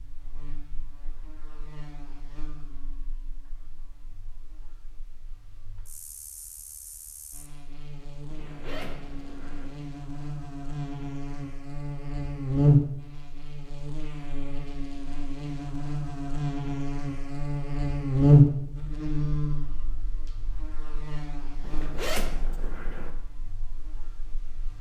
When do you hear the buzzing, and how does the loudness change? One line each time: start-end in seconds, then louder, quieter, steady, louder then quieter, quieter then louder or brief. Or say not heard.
0.0-24.7 louder then quieter.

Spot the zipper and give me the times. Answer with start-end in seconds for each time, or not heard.
8.2-9.7, 21.6-23.1.